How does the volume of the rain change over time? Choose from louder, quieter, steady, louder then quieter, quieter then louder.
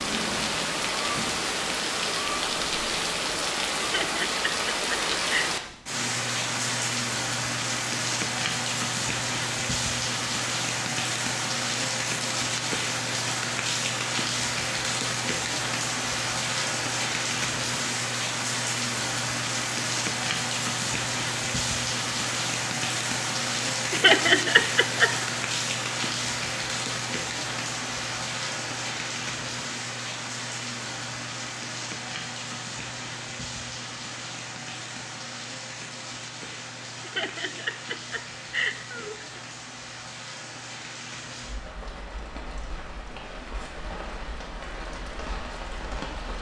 quieter.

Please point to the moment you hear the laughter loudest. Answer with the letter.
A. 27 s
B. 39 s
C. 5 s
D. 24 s
D.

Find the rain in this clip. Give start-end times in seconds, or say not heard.
0.0-46.3.